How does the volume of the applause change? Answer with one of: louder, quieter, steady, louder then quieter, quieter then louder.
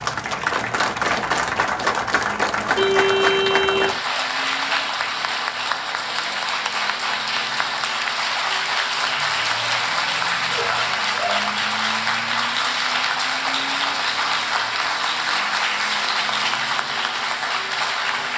steady.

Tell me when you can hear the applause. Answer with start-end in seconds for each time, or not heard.
0.0-18.3.